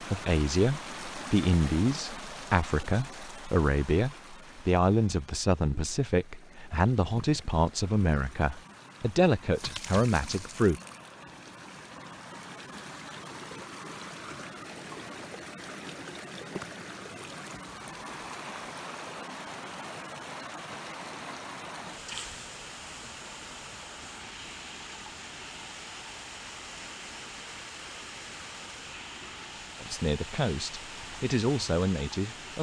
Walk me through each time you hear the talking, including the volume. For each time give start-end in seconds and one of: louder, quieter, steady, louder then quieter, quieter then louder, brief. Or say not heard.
0.0-10.8 steady
29.8-32.5 brief.